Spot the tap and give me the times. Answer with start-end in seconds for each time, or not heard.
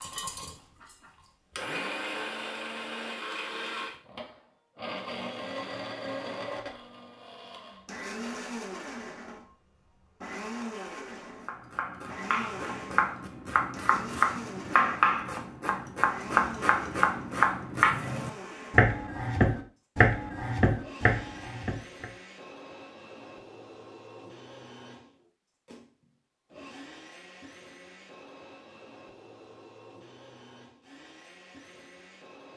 not heard.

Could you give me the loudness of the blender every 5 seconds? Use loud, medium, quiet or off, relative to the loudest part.
loud, loud, loud, medium, medium, quiet, quiet.